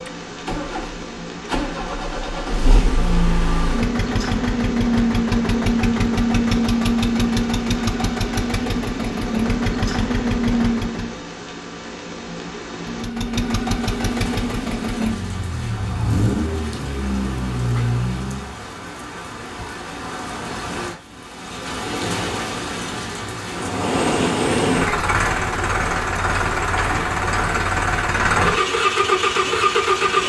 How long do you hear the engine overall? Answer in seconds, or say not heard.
24 s.